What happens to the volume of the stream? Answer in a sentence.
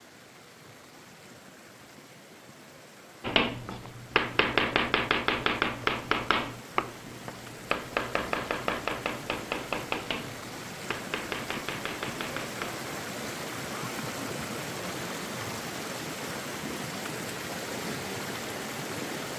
The volume of the stream goes up.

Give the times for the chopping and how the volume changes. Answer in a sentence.
The chopping can be heard from 3.2 to 12.8 s, getting quieter.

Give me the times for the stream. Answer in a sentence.
The stream can be heard from 0.0 to 19.3 s.